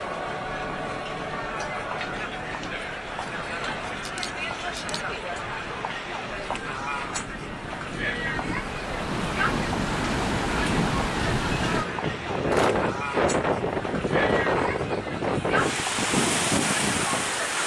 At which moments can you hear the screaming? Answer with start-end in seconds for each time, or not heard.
not heard.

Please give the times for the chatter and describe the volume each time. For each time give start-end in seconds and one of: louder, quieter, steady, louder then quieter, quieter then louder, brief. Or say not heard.
0.0-17.6 steady.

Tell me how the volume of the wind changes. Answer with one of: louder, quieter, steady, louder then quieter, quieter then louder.
louder.